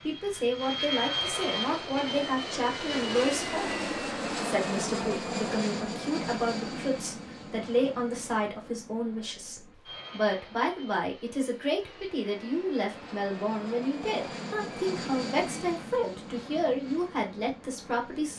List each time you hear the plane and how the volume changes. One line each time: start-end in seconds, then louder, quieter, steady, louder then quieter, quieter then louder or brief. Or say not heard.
0.0-18.3 quieter then louder.